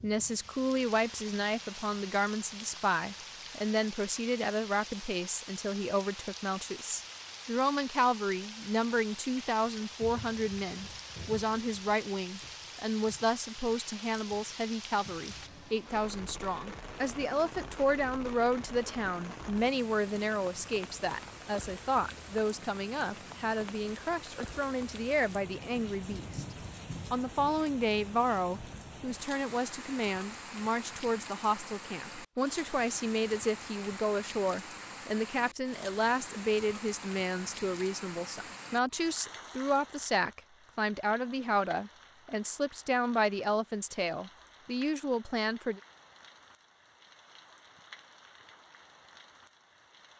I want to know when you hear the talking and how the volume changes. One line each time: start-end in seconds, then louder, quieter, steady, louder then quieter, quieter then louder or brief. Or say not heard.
0.0-26.4 steady
27.1-45.8 steady.